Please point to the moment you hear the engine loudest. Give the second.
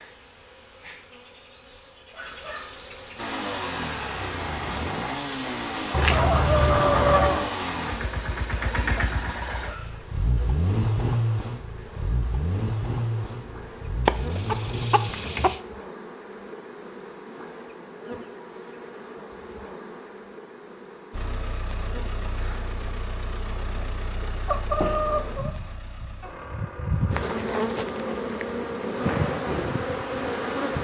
11 s.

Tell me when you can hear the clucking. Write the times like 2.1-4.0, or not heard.
5.9-7.5, 14.1-15.6, 24.4-25.6.